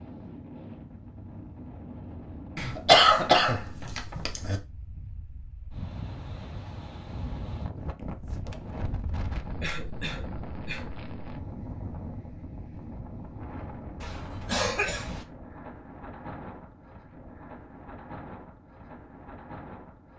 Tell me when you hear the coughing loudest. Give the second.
3 s.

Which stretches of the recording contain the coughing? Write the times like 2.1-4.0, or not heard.
2.5-4.6, 9.6-10.9, 14.0-15.2.